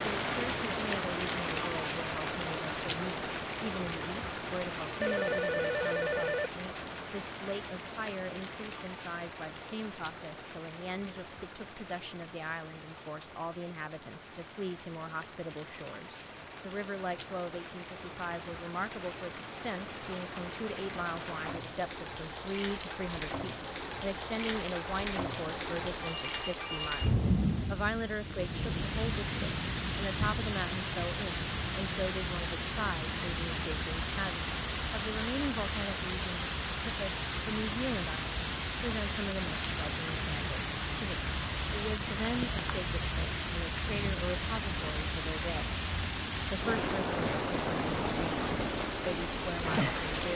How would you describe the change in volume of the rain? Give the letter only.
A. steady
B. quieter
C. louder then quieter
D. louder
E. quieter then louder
E.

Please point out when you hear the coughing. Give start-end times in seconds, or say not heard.
not heard.